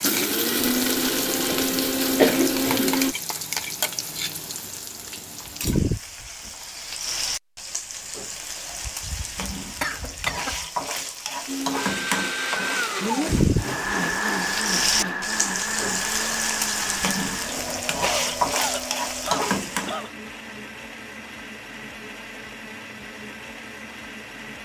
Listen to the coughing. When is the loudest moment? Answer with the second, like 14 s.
2 s.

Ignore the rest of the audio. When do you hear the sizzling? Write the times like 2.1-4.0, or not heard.
0.0-20.0.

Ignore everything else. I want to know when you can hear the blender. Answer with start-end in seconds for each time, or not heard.
0.0-3.1, 11.4-24.6.